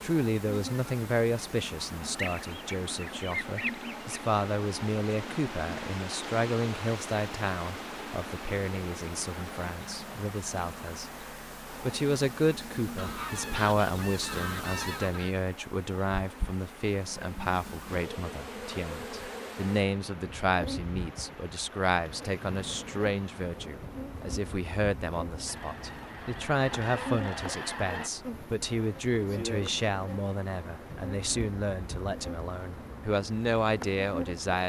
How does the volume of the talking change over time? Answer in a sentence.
The loudness of the talking stays about the same.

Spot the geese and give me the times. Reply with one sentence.
You can hear the geese from 2.1 to 4.2 s, from 12.9 to 15.3 s and from 25.4 to 28.1 s.